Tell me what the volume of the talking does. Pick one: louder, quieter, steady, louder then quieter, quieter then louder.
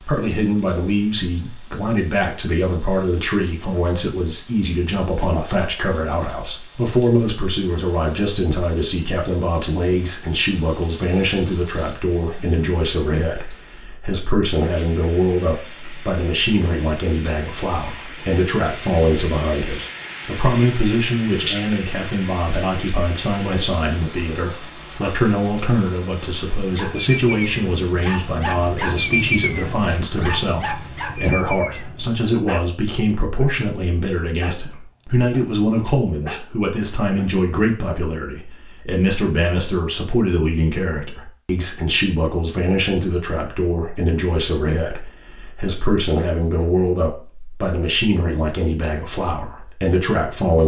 steady.